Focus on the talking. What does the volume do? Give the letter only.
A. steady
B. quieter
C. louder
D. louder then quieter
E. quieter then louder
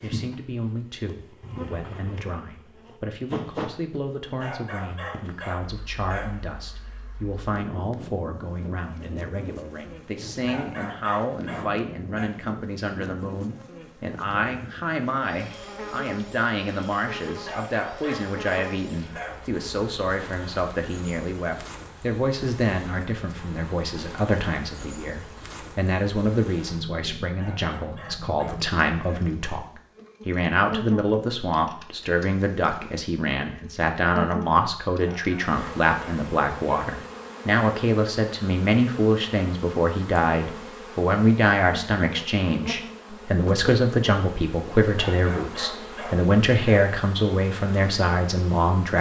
C.